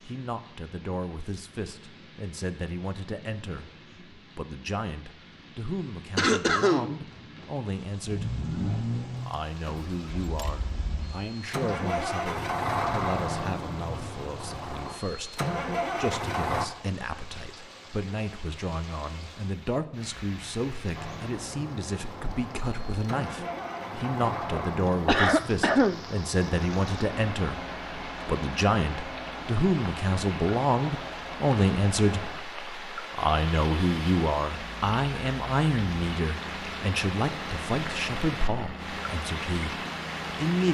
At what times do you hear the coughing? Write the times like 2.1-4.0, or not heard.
6.2-7.0, 24.3-26.0.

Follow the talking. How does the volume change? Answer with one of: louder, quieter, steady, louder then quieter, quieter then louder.
louder.